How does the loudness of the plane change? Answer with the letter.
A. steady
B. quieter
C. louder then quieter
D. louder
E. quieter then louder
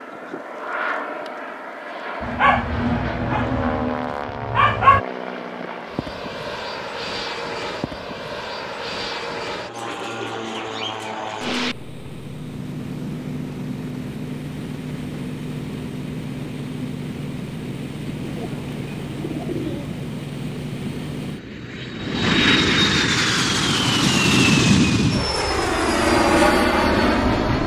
D.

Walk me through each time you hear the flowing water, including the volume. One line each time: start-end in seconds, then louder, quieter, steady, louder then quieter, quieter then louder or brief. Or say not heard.
not heard.